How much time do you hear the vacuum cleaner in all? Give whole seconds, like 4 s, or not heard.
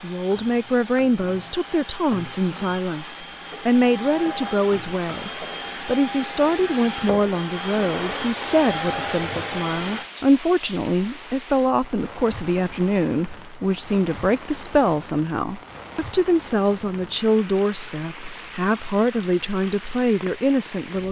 10 s.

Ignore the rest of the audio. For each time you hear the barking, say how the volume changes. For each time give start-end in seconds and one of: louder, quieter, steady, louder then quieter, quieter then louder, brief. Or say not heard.
not heard.